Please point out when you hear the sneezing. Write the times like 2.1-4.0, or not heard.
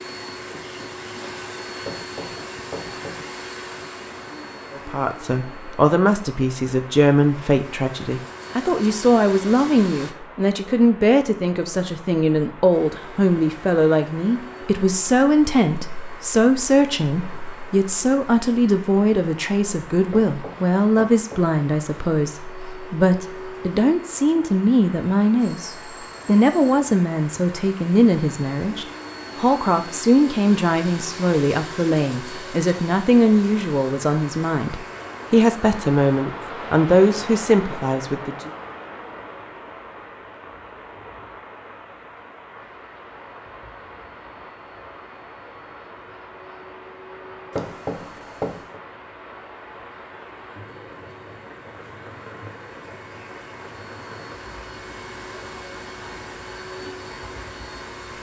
not heard.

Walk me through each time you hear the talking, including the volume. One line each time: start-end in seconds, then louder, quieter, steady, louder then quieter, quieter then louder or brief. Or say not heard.
4.7-38.5 steady.